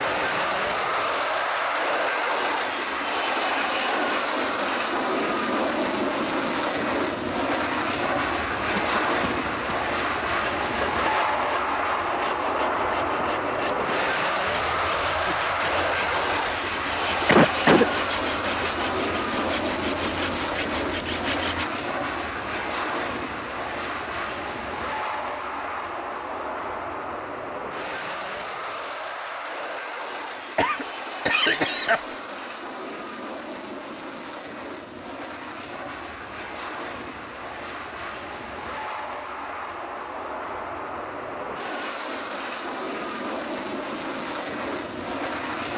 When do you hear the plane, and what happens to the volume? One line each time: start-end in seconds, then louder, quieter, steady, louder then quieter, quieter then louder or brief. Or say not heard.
0.0-45.7 quieter.